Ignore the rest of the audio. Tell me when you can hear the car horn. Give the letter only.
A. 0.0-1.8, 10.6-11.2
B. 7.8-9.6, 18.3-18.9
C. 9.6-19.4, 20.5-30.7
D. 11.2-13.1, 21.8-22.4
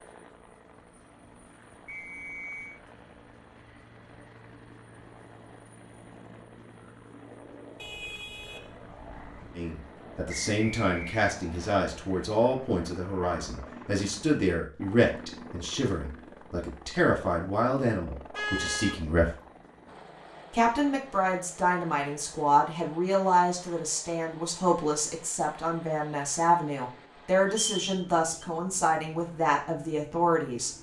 B.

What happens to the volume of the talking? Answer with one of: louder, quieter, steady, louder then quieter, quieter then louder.
steady.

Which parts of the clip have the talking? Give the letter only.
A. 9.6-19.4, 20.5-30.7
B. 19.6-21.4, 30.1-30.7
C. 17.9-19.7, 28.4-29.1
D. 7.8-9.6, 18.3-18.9
A.